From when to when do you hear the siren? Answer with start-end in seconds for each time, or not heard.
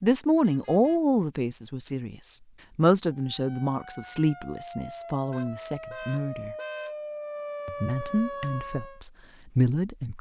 3.1-9.0.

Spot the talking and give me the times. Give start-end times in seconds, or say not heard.
0.0-6.5, 7.7-10.1.